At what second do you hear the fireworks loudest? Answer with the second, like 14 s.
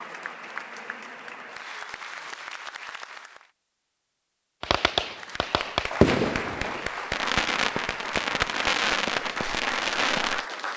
6 s.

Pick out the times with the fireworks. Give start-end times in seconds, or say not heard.
4.6-10.4.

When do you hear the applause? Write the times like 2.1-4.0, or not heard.
0.0-3.5, 5.0-10.7.